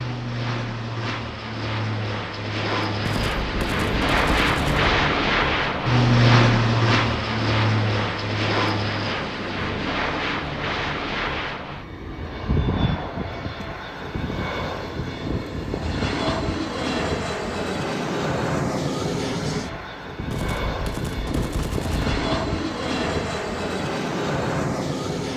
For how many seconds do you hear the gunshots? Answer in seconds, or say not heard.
4 s.